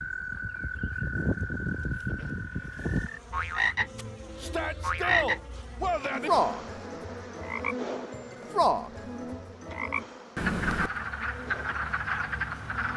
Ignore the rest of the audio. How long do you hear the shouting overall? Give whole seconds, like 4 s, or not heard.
2 s.